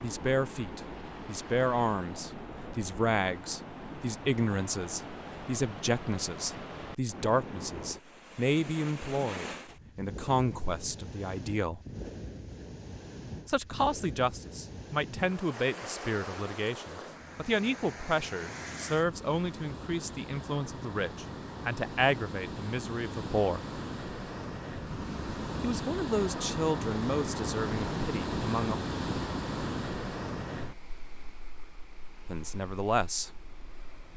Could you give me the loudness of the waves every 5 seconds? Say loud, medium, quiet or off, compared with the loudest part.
medium, medium, medium, medium, medium, loud, medium.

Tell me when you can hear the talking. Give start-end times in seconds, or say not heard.
0.0-11.8, 13.4-23.6, 25.6-28.8, 32.2-33.3.